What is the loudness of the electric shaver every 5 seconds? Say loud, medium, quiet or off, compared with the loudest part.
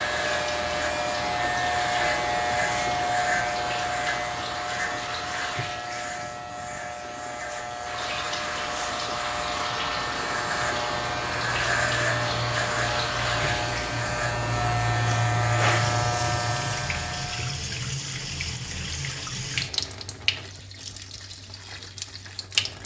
loud, medium, loud, loud, off.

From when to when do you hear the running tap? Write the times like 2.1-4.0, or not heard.
0.0-22.8.